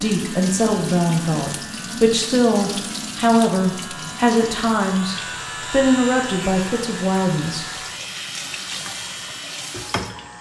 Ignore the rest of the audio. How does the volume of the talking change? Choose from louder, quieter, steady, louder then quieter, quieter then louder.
steady.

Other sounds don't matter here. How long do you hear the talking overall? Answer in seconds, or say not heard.
8 s.